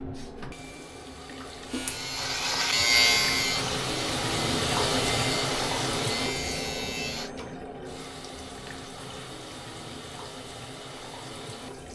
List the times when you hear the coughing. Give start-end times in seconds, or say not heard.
not heard.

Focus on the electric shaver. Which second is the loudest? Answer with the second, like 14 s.
3 s.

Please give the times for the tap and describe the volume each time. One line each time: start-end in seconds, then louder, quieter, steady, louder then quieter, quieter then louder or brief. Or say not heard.
0.0-11.9 louder then quieter.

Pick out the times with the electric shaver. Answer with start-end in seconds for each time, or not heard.
1.6-7.3.